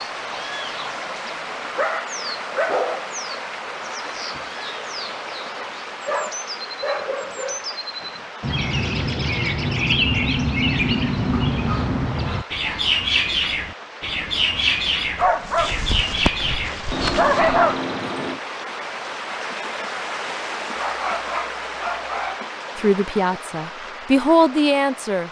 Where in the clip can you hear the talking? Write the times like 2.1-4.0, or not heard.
22.8-25.2.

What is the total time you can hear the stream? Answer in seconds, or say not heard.
25 s.